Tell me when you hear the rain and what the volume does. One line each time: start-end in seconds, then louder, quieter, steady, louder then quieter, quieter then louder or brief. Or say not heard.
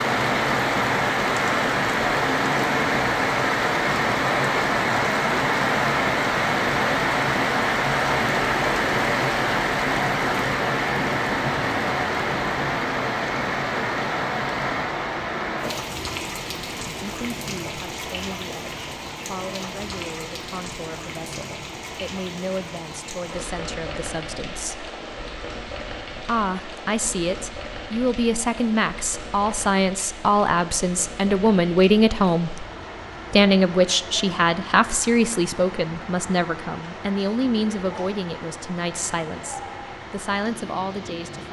0.0-41.4 quieter.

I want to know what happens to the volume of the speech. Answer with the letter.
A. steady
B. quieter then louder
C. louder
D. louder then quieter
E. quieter
D.